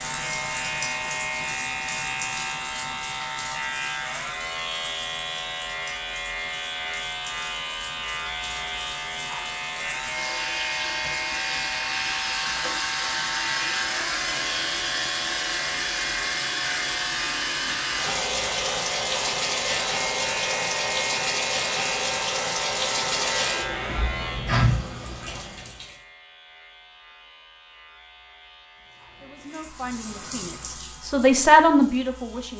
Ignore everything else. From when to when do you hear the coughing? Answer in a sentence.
The coughing can't be heard in this clip.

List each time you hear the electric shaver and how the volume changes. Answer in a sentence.
The electric shaver can be heard from 0.0 to 32.5 s, getting quieter.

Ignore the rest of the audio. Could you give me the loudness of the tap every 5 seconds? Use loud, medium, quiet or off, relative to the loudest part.
medium, quiet, loud, loud, loud, quiet, quiet.